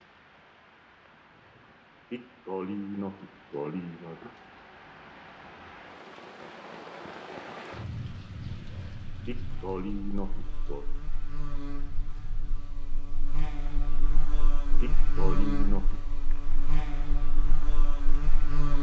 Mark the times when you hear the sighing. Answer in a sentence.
The sighing can be heard from 2.1 to 4.3 s, from 9.2 to 10.8 s and from 14.8 to 16.0 s.